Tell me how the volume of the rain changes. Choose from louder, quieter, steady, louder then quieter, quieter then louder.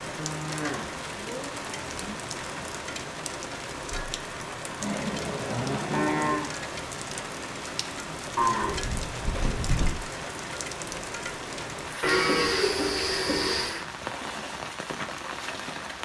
steady.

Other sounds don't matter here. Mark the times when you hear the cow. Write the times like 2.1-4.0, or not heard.
0.1-2.2, 4.8-6.5, 8.3-10.0, 12.0-13.8.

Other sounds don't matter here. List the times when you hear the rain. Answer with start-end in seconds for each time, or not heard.
0.0-16.0.